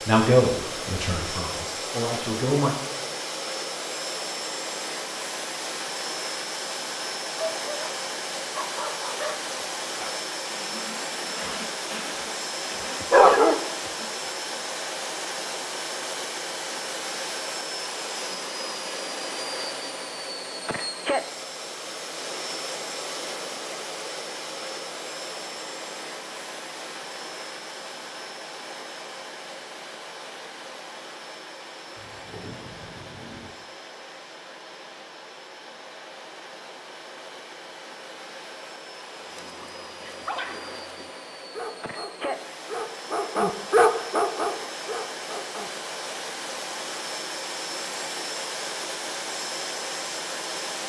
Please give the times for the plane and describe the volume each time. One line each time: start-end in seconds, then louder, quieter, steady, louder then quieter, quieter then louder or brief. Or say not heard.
0.0-50.8 quieter then louder.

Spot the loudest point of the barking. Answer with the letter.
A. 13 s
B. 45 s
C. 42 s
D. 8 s
A.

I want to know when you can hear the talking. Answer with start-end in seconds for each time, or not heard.
0.1-2.8.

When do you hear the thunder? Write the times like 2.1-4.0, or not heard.
31.9-33.5.